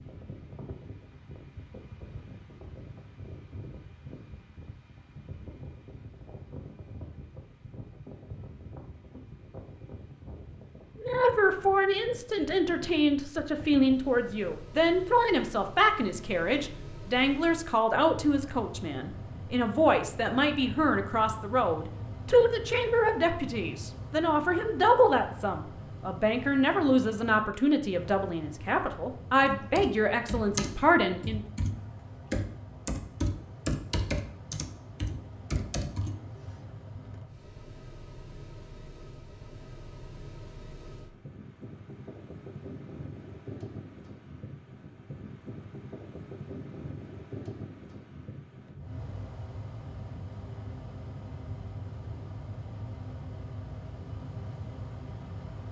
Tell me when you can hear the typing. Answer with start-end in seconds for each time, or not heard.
29.4-37.0.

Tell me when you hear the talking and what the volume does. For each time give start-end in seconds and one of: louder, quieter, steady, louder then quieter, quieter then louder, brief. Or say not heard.
11.0-31.4 steady.